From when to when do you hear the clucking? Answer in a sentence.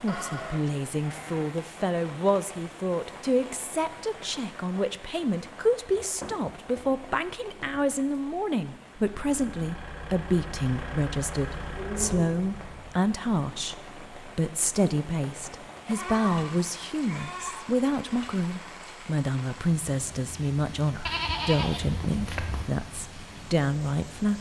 You can't hear the clucking here.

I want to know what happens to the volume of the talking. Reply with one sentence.
The loudness of the talking stays about the same.